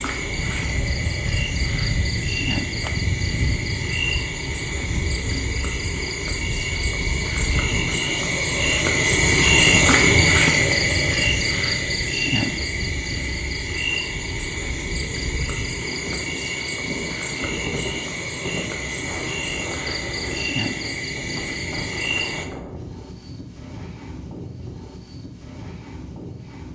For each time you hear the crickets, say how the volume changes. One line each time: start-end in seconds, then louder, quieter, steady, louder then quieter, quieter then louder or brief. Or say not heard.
0.0-22.4 louder then quieter.